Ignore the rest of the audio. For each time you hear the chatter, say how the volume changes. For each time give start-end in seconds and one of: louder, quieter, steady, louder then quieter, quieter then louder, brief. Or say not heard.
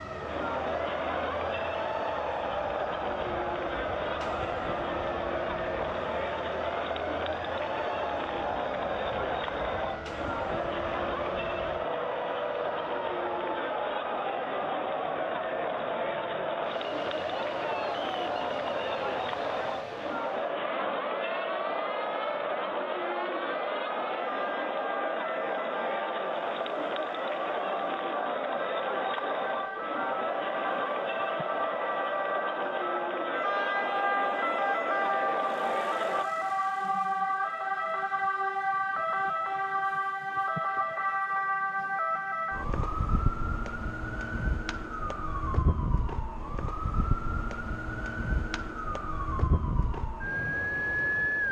0.0-36.2 steady.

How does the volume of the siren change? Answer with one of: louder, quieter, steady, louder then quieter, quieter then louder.
louder.